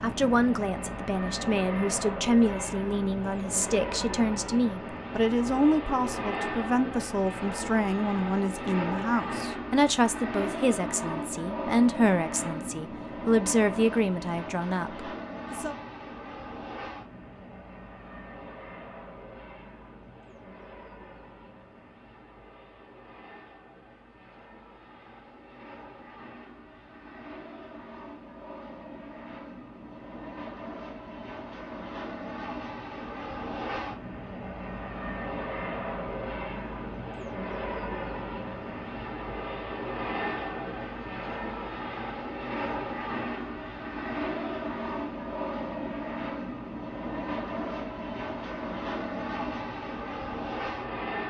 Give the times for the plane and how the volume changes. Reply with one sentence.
The plane can be heard from 0.0 to 51.2 s, getting quieter then louder.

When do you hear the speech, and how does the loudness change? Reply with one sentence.
The speech can be heard from 0.0 to 15.8 s, at a steady volume.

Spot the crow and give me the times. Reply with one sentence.
The crow can't be heard in this clip.